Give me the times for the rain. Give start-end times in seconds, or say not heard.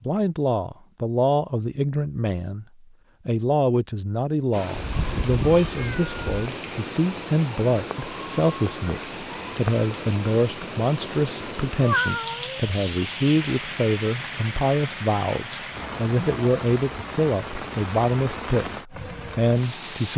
4.5-20.1.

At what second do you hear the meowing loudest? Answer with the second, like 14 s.
12 s.